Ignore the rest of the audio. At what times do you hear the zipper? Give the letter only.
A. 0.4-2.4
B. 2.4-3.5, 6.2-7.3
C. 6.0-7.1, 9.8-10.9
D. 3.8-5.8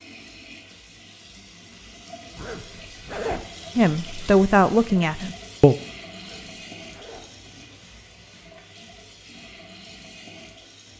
B.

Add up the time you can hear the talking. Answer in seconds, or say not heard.
2 s.